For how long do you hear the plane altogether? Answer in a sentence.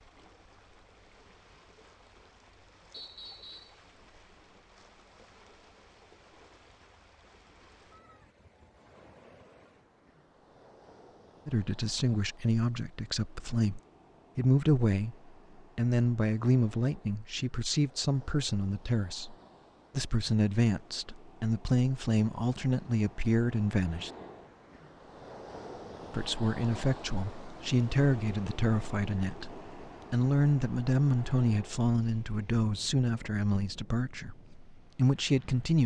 You can't hear the plane here.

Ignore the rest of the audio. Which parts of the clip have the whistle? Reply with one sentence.
The whistle can be heard from 2.9 to 3.8 s.